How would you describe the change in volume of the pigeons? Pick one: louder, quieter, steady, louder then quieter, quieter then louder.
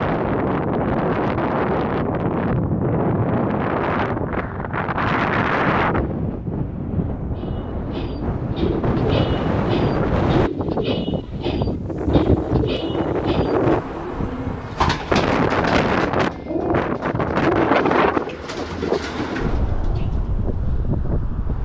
steady.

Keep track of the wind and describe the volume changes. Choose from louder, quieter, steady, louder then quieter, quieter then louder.
steady.